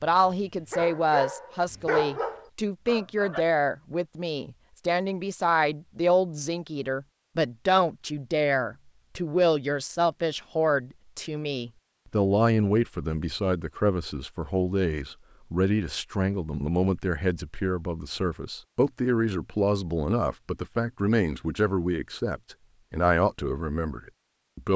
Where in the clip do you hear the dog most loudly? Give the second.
2 s.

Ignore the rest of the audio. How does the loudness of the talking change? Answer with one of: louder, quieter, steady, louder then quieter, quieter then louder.
steady.